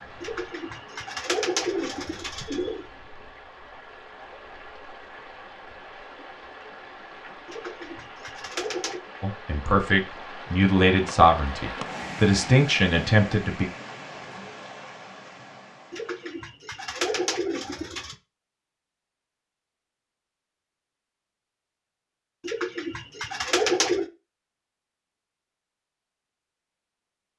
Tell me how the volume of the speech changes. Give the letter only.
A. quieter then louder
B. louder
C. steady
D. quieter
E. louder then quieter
C.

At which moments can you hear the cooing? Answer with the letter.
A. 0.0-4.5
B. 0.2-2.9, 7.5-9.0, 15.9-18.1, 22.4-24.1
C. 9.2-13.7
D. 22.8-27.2
B.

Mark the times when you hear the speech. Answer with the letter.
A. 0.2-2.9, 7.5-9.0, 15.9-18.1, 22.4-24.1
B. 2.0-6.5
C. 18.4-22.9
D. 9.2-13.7
D.